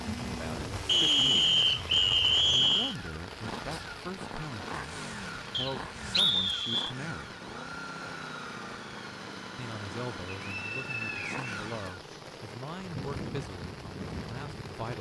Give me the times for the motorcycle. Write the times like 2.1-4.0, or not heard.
0.0-14.9.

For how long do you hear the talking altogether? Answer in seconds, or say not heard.
12 s.